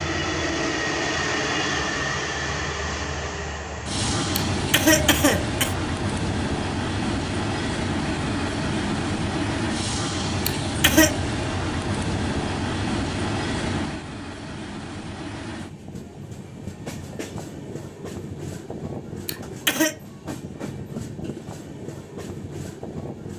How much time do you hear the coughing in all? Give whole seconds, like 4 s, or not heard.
3 s.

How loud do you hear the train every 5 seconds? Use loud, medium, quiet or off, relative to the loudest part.
loud, loud, loud, medium, medium.